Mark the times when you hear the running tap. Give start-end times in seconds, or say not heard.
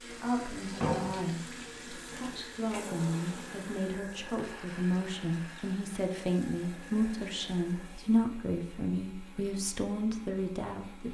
0.0-8.2.